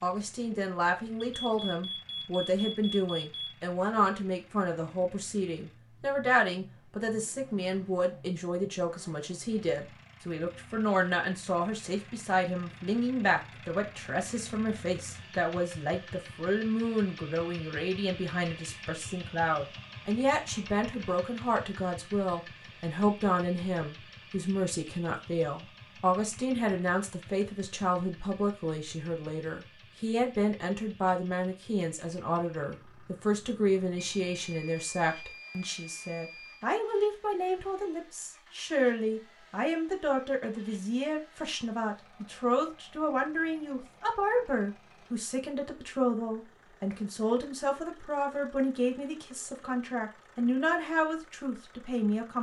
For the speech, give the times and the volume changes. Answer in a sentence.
The speech can be heard from 0.0 to 52.3 s, at a steady volume.